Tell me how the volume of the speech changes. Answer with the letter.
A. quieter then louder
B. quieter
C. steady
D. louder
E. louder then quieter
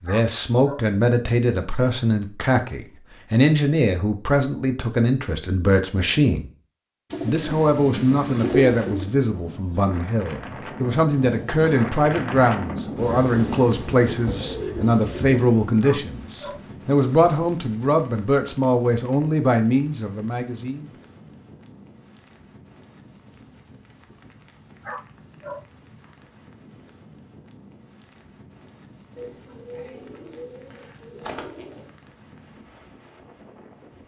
C.